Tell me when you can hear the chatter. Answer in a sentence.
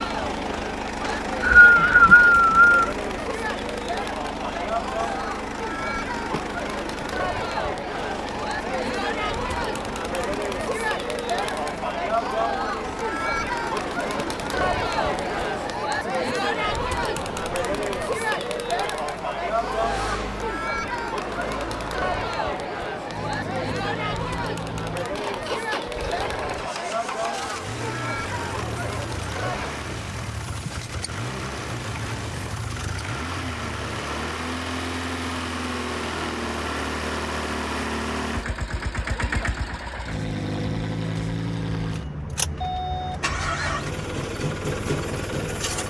The chatter can be heard from 0.0 to 29.9 s.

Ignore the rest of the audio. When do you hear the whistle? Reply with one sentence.
The whistle can be heard from 1.0 to 2.8 s.